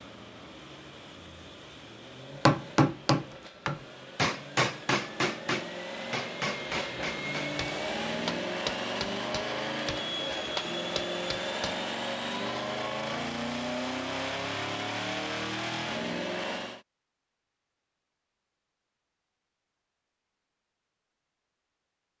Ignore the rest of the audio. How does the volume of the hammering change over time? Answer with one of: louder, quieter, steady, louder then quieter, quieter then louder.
quieter.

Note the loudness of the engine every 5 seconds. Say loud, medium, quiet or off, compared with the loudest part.
quiet, loud, loud, loud, off.